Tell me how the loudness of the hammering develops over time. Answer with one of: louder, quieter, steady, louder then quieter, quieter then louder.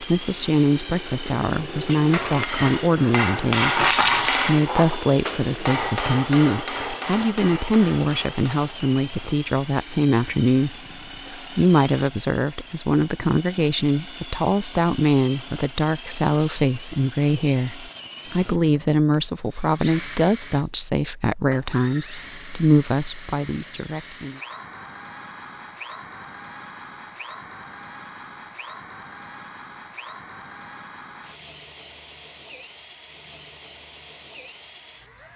louder then quieter.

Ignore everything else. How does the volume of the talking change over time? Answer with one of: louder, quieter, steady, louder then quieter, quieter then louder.
steady.